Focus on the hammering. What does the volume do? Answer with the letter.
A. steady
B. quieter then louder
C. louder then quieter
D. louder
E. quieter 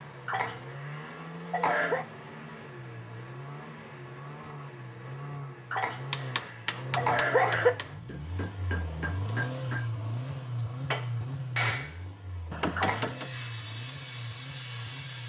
D.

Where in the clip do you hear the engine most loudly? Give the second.
10 s.